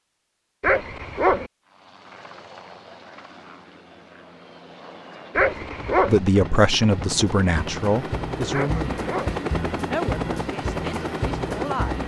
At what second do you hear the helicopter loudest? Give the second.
10 s.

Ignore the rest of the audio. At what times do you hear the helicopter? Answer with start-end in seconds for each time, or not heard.
1.6-12.0.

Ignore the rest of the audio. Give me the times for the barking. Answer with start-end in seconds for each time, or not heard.
0.6-1.5, 5.3-6.2, 8.5-9.3.